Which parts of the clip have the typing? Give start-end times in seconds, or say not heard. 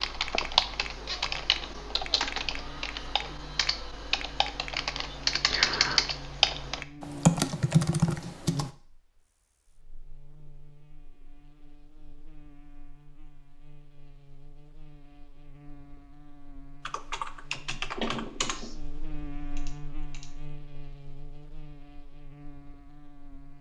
0.0-8.7, 16.9-20.3.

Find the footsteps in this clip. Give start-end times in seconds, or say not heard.
not heard.